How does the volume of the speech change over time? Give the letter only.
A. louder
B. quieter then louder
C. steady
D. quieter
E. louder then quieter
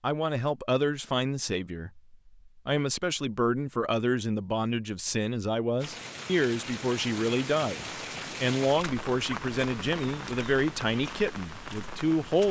C.